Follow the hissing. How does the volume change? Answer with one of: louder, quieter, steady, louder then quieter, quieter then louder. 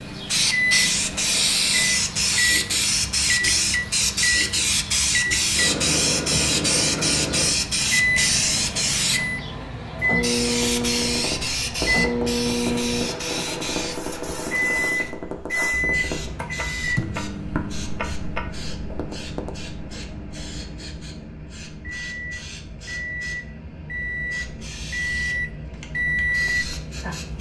quieter.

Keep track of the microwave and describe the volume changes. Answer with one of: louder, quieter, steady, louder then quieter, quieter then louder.
quieter then louder.